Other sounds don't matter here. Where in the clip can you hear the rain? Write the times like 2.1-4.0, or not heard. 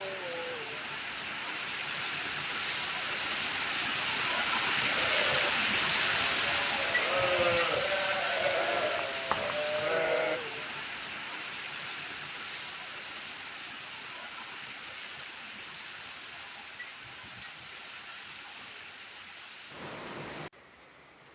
0.0-21.3.